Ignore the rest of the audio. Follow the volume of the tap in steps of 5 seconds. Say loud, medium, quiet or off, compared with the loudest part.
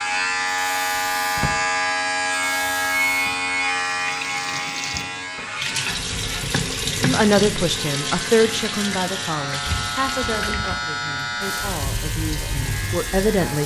medium, loud, medium.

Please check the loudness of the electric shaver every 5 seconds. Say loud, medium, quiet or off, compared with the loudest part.
loud, medium, medium.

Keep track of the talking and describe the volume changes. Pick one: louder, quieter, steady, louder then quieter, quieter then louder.
quieter then louder.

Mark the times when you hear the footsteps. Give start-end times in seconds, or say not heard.
not heard.